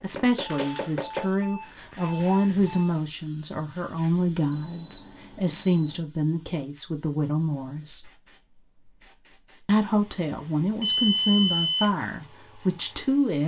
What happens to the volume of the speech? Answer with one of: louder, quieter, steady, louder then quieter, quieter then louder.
steady.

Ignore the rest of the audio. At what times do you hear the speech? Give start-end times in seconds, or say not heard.
0.0-8.1, 9.7-13.4.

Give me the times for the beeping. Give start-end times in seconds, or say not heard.
0.5-2.9, 4.5-6.0, 10.8-11.9.